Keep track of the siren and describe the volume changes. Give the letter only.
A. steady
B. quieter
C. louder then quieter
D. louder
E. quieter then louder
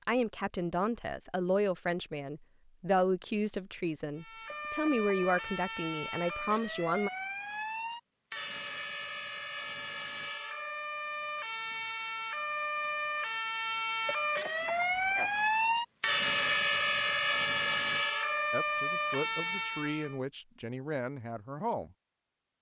D.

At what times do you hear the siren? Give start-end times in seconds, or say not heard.
4.2-20.2.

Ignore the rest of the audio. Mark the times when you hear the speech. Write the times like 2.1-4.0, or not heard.
0.1-7.1, 18.5-21.9.